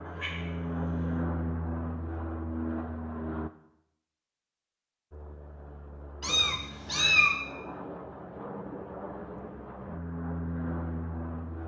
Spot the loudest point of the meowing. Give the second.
7 s.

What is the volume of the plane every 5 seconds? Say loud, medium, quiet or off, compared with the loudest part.
loud, medium, loud.